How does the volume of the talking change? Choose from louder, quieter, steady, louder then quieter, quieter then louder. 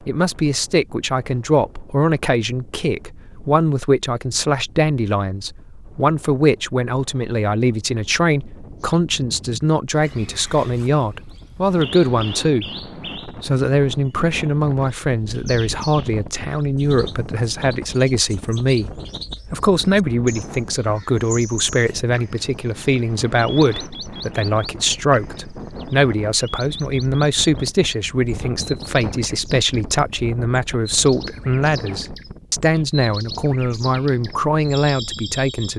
steady.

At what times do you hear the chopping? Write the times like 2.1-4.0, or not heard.
not heard.